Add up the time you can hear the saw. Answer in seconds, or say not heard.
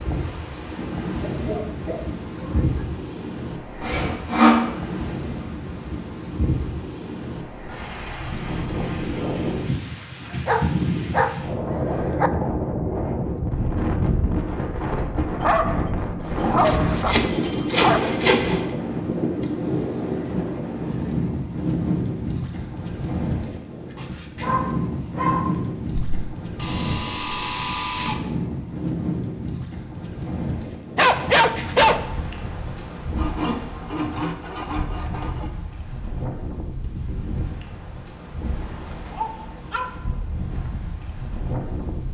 7 s.